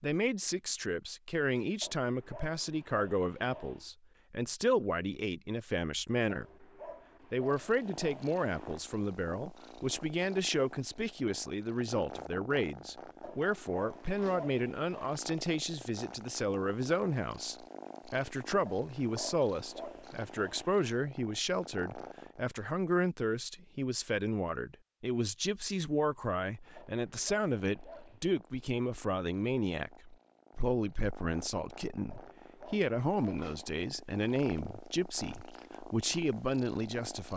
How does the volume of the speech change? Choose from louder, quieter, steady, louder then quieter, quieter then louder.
steady.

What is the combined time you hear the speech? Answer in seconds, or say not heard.
37 s.